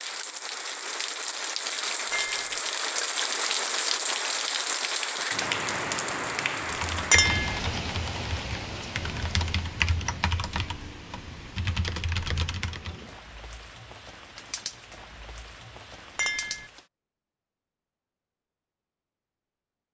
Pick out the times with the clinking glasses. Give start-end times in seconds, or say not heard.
2.1-2.6, 7.1-7.6, 16.1-16.6.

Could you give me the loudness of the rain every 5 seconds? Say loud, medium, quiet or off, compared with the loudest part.
loud, loud, quiet, quiet.